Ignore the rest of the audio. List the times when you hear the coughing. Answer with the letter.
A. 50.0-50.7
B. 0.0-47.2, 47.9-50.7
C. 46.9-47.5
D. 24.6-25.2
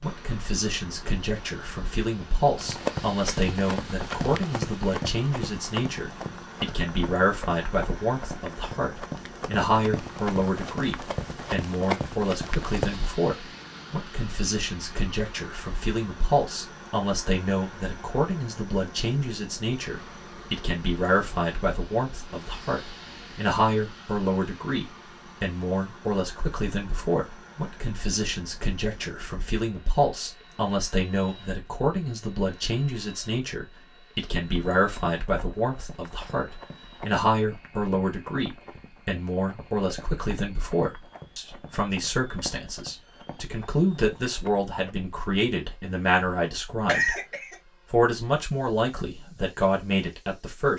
C.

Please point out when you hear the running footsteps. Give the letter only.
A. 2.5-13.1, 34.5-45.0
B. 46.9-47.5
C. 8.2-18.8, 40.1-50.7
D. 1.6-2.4
A.